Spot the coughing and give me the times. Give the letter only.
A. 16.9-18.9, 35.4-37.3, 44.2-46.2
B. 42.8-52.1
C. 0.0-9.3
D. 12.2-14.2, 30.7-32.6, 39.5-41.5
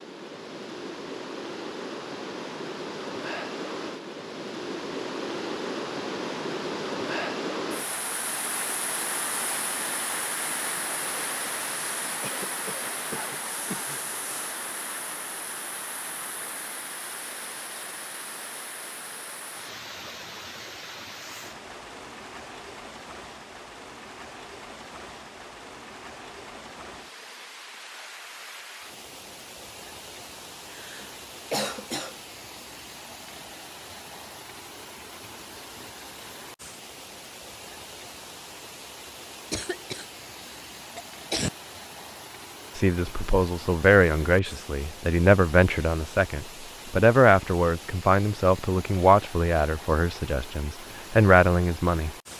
D.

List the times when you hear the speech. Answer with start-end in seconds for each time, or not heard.
42.8-52.1.